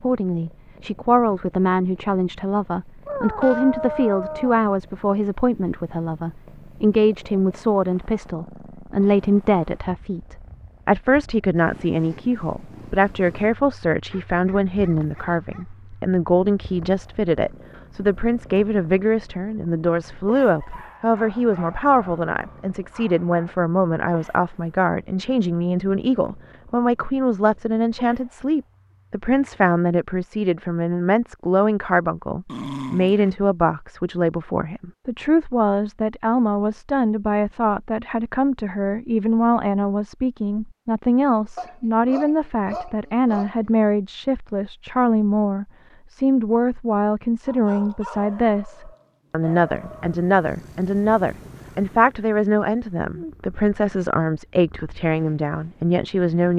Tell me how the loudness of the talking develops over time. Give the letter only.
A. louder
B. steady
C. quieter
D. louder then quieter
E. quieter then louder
B.